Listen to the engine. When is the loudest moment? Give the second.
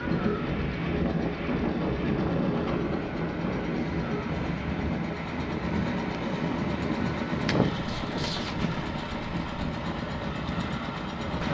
7 s.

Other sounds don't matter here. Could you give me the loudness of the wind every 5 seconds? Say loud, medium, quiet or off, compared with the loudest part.
loud, medium, medium.